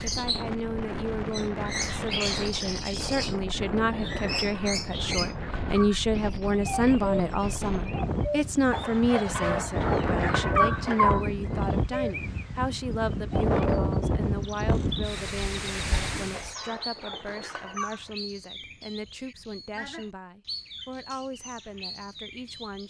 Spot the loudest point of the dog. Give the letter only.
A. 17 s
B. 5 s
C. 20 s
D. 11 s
D.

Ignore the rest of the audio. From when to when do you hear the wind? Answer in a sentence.
You can hear the wind from 0.0 to 16.6 s.